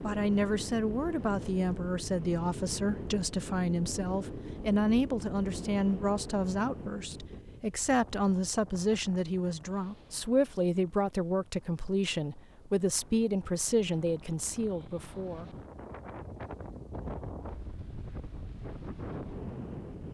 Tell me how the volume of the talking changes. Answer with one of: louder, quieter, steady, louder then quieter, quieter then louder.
steady.